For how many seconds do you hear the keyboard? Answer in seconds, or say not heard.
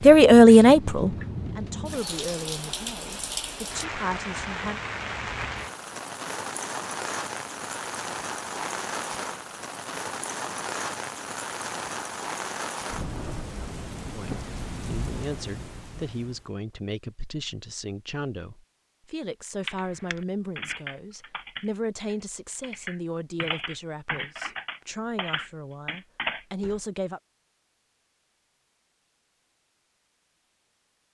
7 s.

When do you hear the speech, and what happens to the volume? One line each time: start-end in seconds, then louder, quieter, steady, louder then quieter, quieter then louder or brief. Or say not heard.
0.0-4.8 quieter then louder
14.2-27.2 steady.